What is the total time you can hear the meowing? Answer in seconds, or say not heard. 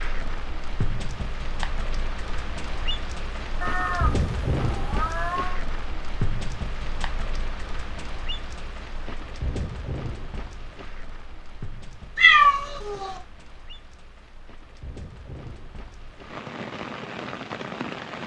3 s.